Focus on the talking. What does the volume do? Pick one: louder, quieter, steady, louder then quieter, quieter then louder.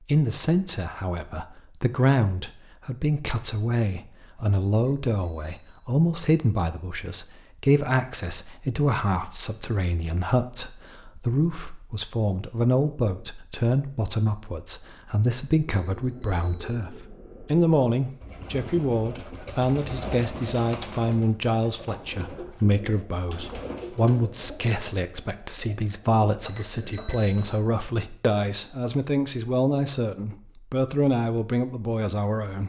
steady.